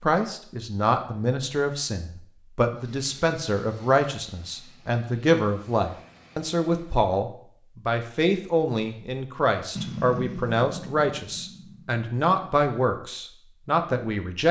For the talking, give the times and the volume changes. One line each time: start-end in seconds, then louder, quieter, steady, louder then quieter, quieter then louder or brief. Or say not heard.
0.0-14.4 steady.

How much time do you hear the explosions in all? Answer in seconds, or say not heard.
2 s.